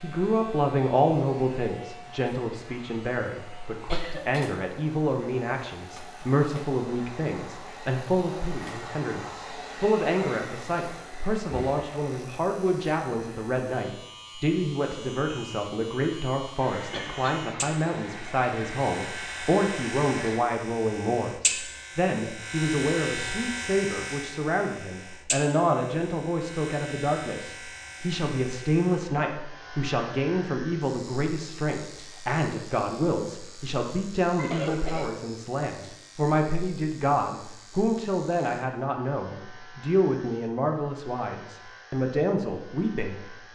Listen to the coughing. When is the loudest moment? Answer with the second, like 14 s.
35 s.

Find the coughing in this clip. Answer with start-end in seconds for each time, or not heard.
3.9-4.5, 16.9-17.4, 34.4-35.1.